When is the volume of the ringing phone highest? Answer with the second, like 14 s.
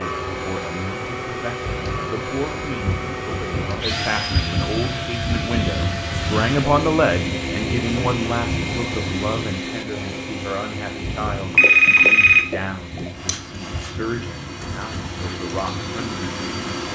12 s.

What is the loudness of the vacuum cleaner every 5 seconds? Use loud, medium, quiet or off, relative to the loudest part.
loud, loud, medium, loud.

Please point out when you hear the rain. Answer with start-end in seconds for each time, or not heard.
0.0-16.8.